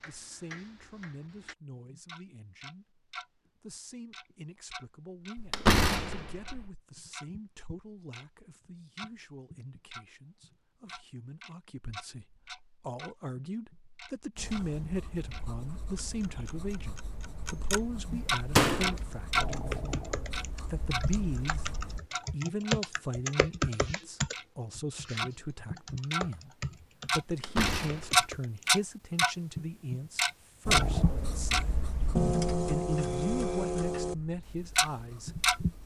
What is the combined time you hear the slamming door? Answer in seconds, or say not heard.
3 s.